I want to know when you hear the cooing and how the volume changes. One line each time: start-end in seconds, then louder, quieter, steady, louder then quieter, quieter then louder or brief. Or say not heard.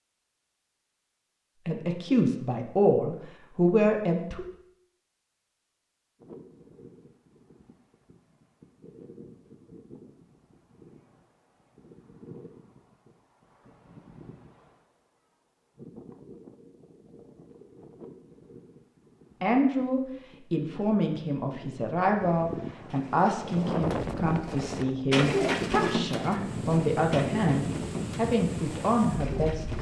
22.9-29.7 louder then quieter.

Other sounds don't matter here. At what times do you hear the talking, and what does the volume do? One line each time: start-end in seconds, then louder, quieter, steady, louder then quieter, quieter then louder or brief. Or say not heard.
1.6-4.5 brief
19.4-29.7 steady.